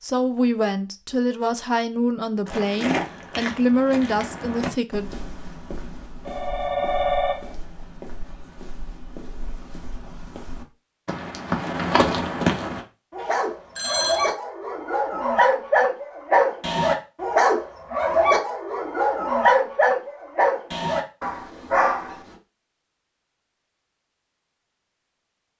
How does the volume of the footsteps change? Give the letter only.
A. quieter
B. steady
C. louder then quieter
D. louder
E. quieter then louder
E.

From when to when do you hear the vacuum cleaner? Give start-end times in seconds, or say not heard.
not heard.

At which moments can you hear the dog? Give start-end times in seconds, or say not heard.
13.1-22.4.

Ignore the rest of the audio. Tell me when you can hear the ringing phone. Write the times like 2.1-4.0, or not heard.
6.2-7.5, 13.2-14.3.